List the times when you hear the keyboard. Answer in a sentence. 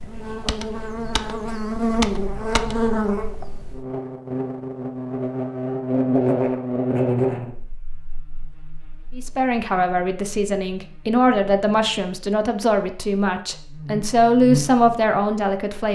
The keyboard can be heard from 0.2 to 3.5 s.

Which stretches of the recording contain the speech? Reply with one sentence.
You can hear the speech from 9.2 to 15.9 s.